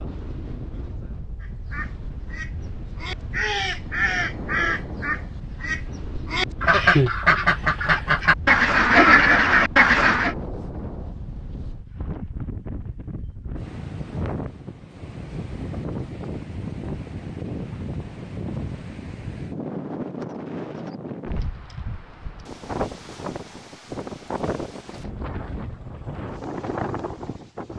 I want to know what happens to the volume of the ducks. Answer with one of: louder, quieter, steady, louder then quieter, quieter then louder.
louder.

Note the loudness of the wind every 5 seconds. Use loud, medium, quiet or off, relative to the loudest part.
medium, medium, loud, loud, loud, loud.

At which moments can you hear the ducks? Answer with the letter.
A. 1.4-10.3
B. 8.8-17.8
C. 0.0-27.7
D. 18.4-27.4
A.